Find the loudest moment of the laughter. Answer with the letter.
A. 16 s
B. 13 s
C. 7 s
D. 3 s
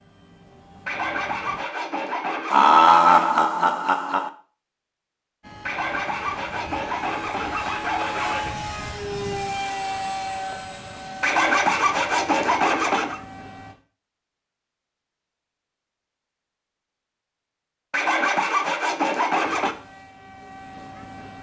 D.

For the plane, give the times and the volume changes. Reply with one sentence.
The plane can be heard briefly from 0.0 to 1.6 s; from 5.4 to 13.8 s, getting louder then quieter; and briefly from 19.4 to 21.3 s.